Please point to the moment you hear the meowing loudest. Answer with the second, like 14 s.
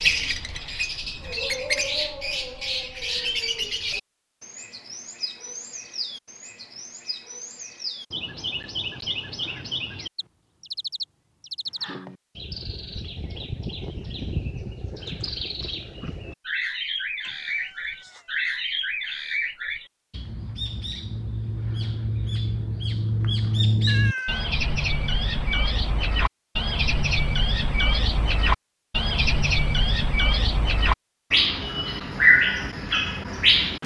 24 s.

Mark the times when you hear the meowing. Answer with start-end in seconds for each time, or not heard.
1.1-1.8, 17.2-18.4, 23.9-24.5.